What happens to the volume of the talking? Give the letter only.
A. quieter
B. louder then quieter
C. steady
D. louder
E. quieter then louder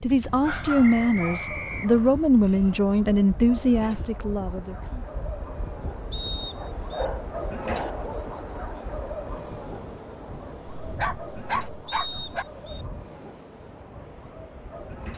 A.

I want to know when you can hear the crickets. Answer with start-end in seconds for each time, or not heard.
2.6-15.1.